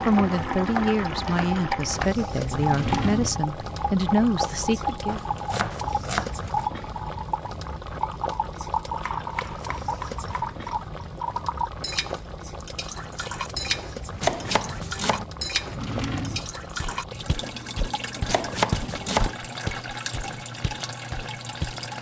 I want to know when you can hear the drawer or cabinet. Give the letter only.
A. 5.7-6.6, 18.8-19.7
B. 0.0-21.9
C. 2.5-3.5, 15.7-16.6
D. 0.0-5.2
C.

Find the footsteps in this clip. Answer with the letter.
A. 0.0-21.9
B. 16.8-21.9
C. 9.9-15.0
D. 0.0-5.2
B.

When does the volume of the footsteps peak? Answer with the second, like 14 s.
19 s.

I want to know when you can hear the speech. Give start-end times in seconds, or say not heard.
0.0-5.2.